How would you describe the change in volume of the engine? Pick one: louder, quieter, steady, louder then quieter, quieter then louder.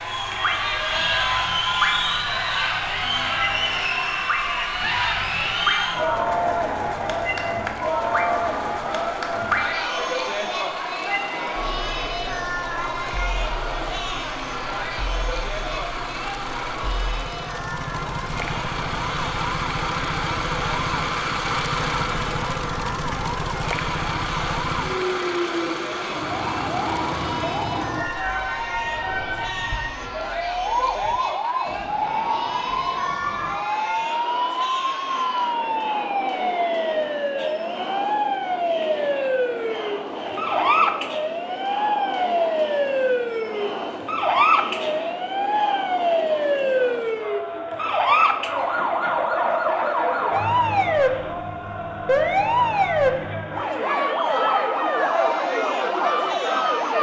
louder.